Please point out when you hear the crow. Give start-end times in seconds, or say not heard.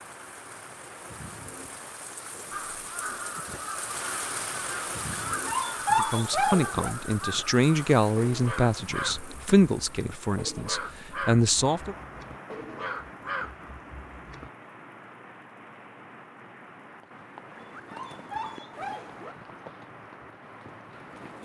2.5-14.5.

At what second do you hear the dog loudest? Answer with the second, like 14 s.
6 s.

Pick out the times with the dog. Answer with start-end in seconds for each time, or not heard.
5.1-7.0, 17.6-19.4.